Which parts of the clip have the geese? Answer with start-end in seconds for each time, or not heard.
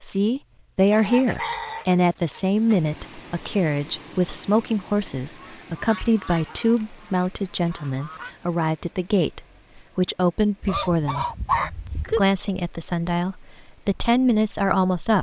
0.9-2.8, 5.3-8.3, 10.6-12.2.